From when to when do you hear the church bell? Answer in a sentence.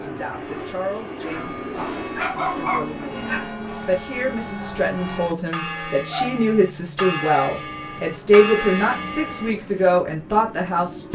The church bell can be heard from 0.3 to 9.6 s.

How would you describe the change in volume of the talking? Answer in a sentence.
The volume of the talking goes up.